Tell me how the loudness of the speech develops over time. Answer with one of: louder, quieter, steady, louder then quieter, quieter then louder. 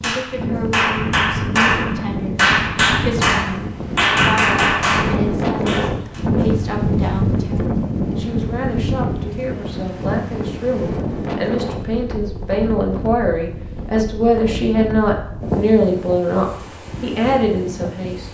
louder.